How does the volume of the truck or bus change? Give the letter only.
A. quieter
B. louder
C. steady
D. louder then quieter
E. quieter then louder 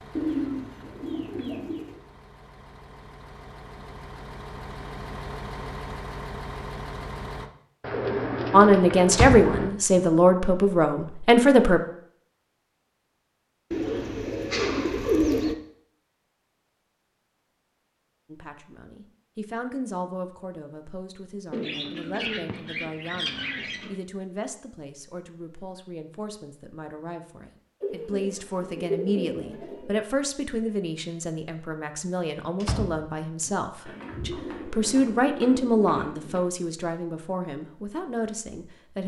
B.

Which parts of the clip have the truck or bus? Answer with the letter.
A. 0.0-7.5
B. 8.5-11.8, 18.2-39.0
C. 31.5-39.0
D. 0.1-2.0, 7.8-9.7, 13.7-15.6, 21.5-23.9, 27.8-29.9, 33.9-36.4
A.